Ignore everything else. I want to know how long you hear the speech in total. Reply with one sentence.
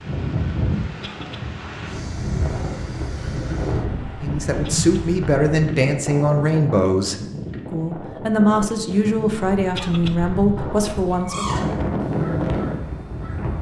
You can hear the speech for 7 seconds altogether.